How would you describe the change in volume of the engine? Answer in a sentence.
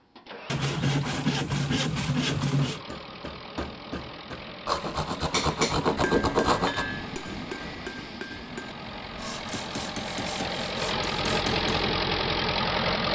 The volume of the engine goes up.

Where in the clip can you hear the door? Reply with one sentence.
The door can't be heard in this clip.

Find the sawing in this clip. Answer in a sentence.
You can hear the sawing from 0.5 to 2.9 s, from 4.7 to 6.8 s and from 9.2 to 11.4 s.